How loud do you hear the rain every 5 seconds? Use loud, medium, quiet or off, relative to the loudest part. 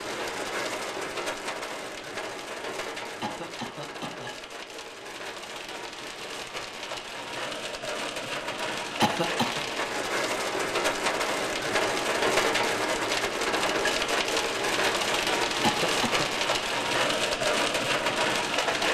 medium, medium, loud, loud.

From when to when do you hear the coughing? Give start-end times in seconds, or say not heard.
3.2-4.3, 9.0-9.7, 15.6-16.3.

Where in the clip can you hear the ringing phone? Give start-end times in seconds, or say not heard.
not heard.